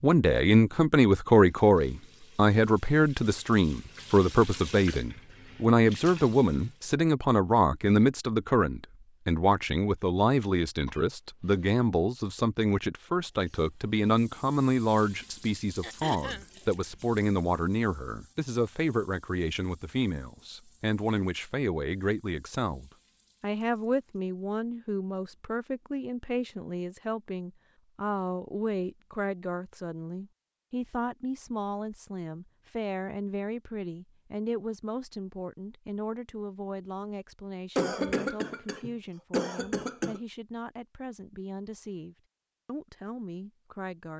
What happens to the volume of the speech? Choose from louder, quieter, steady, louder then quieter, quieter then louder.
quieter.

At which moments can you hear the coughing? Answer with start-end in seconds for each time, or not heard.
10.8-11.7, 15.8-16.4, 37.8-40.2.